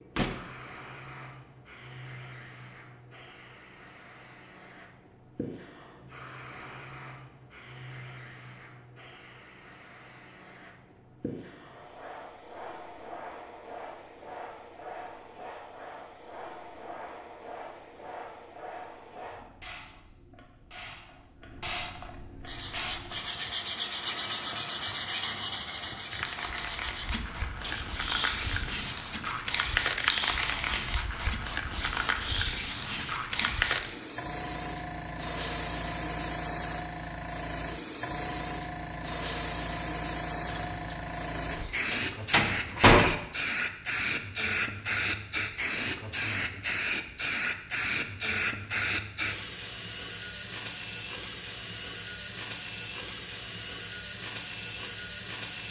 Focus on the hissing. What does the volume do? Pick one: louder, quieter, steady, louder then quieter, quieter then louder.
louder.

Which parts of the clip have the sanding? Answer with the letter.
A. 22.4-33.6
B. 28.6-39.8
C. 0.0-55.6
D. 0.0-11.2
A.